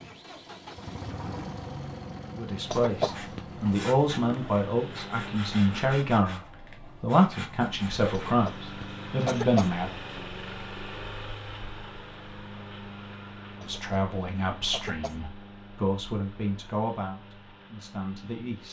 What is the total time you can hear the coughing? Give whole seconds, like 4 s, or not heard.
4 s.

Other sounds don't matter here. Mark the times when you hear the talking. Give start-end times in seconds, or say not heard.
2.4-9.9, 13.6-18.6.